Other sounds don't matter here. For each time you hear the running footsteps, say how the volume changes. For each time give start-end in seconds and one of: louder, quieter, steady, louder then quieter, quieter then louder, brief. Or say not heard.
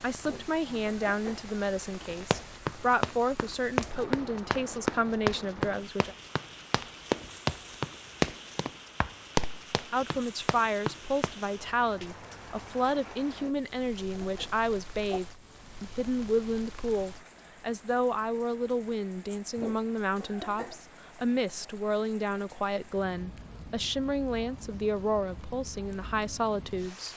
2.0-11.3 steady.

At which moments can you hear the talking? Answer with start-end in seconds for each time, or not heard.
0.0-6.2, 9.9-27.1.